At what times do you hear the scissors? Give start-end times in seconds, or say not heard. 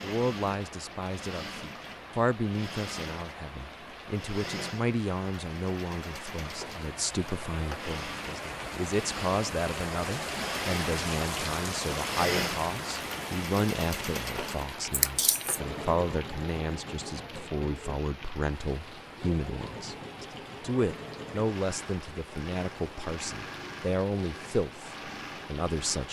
14.9-15.6.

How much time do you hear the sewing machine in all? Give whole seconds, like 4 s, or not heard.
26 s.